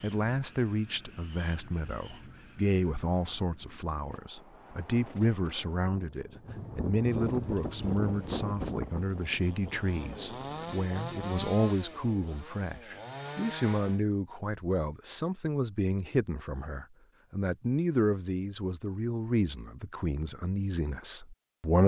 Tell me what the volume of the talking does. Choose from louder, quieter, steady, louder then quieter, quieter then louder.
steady.